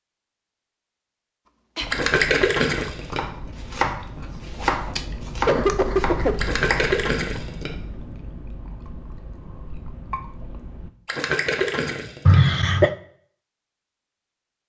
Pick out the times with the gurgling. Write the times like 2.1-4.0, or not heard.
1.9-3.2, 6.4-7.7, 11.1-12.4.